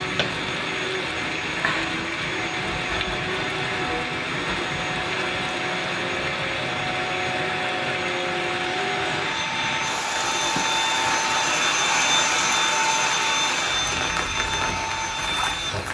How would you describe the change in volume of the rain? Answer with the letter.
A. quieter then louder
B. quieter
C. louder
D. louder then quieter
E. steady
E.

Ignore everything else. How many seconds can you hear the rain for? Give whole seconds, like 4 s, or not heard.
16 s.